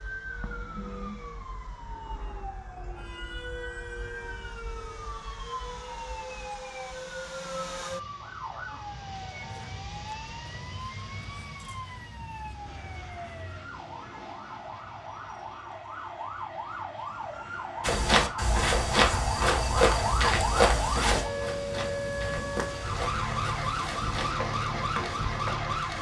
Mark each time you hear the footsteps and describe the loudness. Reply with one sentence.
The footsteps can be heard from 17.8 to 25.6 s, getting quieter.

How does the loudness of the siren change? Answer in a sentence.
The volume of the siren goes up.